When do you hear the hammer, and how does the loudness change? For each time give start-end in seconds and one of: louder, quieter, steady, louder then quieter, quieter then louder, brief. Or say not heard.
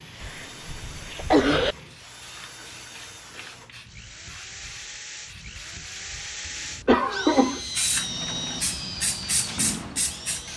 not heard.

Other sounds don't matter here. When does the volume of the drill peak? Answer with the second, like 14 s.
8 s.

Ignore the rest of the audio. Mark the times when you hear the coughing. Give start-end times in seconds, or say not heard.
0.2-1.8, 6.8-7.6.